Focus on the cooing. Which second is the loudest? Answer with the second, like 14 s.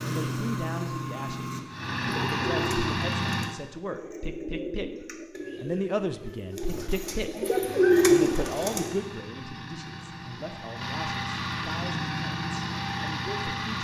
8 s.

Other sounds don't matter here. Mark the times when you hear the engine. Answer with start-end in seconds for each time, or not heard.
0.0-3.5, 7.6-13.8.